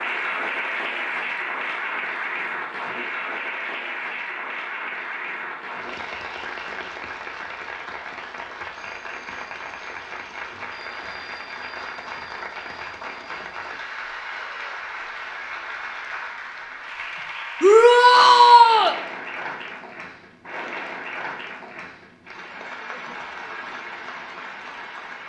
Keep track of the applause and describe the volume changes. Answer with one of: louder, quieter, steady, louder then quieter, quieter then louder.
quieter.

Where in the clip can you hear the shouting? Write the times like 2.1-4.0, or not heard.
17.6-18.9.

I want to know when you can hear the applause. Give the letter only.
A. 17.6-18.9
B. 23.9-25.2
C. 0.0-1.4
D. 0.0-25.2
D.